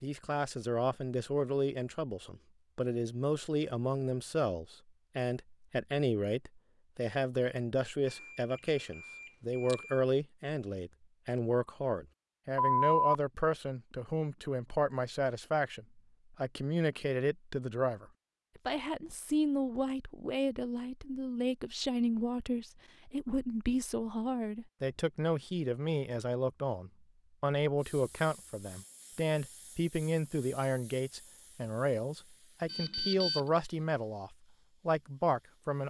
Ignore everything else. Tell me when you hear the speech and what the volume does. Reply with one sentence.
The speech can be heard from 0.0 to 35.8 s, at a steady volume.